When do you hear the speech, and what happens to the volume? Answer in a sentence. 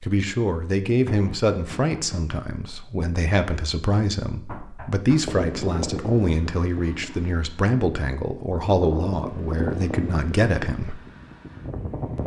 You can hear the speech from 0.0 to 11.0 s, at a steady volume.